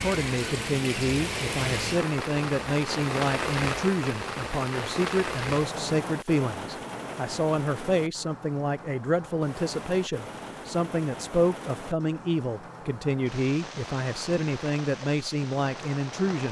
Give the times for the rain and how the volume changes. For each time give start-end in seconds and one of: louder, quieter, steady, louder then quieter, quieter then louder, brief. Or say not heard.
0.0-16.4 quieter.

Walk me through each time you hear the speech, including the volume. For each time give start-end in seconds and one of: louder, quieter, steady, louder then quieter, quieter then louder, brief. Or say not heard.
0.0-16.4 steady.